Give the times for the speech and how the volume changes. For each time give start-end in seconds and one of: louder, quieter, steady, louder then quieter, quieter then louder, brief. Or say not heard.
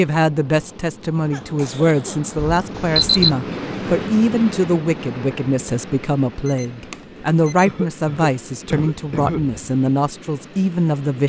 0.0-11.2 steady.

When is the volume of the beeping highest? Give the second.
3 s.